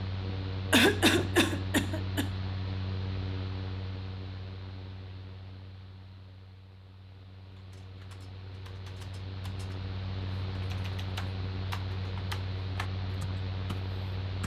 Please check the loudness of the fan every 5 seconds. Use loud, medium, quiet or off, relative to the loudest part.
loud, medium, loud.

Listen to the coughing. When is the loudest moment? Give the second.
1 s.